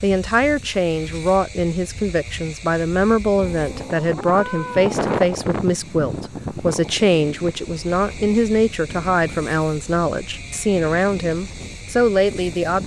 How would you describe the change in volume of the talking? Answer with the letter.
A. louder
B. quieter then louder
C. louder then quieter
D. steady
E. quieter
D.